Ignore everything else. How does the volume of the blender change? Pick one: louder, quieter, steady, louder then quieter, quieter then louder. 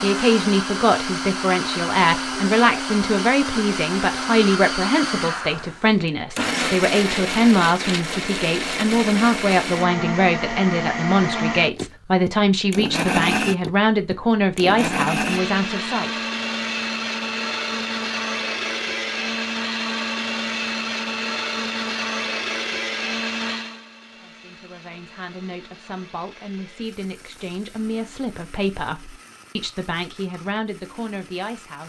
quieter.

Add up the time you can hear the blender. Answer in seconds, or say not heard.
32 s.